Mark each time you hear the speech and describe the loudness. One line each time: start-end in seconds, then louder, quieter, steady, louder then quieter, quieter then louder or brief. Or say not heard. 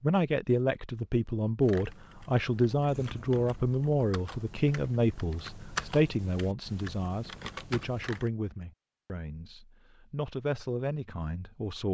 0.0-11.8 quieter.